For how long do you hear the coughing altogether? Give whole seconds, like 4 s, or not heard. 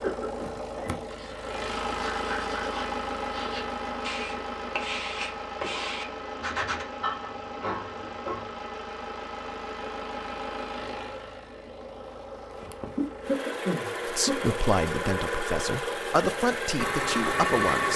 4 s.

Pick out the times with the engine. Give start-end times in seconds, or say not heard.
0.0-17.9.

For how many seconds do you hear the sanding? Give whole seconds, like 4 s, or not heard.
6 s.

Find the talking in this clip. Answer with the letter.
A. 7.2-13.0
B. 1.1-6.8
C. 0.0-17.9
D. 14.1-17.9
D.